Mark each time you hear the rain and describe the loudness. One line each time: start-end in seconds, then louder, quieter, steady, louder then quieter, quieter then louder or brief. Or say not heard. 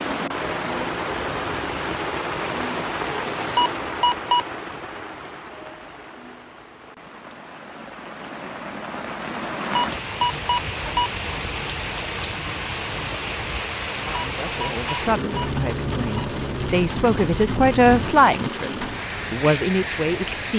0.0-20.5 quieter then louder.